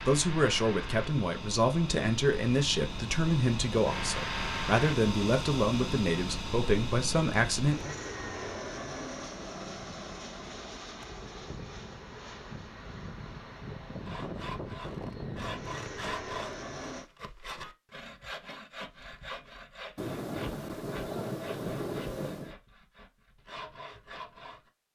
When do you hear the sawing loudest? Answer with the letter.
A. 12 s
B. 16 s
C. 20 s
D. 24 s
B.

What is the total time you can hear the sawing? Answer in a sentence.
You can hear the sawing for 11 seconds altogether.